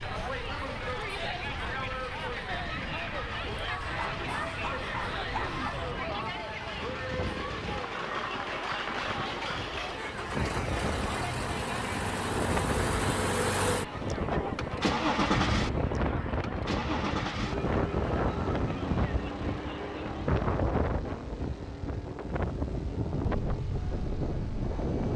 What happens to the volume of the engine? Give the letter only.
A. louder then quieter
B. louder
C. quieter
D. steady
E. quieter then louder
A.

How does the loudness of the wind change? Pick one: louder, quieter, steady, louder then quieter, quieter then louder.
louder.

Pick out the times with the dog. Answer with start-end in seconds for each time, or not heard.
4.0-5.8.